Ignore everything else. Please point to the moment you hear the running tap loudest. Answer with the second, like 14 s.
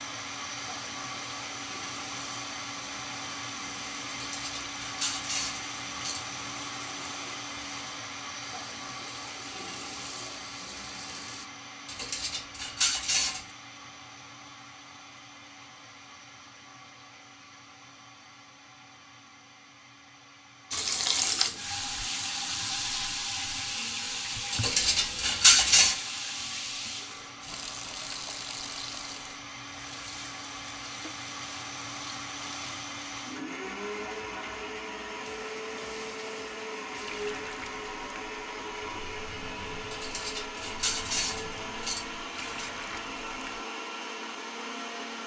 21 s.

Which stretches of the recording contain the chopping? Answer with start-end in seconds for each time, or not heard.
not heard.